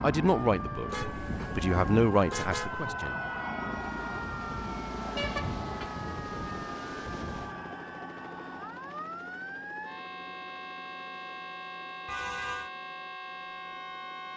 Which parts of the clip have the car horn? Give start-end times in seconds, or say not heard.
0.8-2.9, 5.2-5.9, 12.1-12.7.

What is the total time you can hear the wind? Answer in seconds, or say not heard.
8 s.